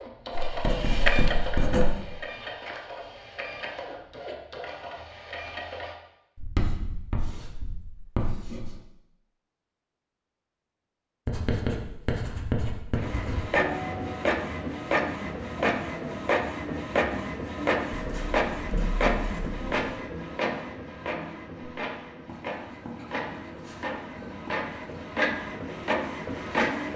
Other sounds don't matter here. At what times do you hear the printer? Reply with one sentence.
The printer can be heard from 0.0 to 6.0 s and from 12.9 to 26.9 s.